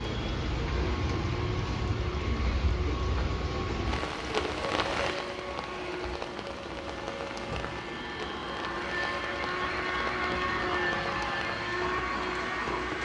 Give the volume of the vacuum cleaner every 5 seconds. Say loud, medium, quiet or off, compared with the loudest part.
medium, medium, loud.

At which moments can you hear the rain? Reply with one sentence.
The rain can be heard from 0.0 to 13.0 s.